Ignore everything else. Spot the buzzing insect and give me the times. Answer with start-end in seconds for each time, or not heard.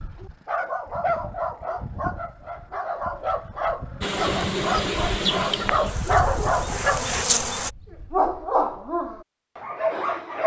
4.0-7.7.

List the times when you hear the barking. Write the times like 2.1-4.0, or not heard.
0.0-10.4.